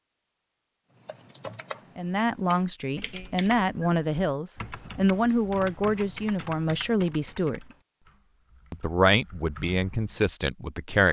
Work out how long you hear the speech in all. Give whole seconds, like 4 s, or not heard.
8 s.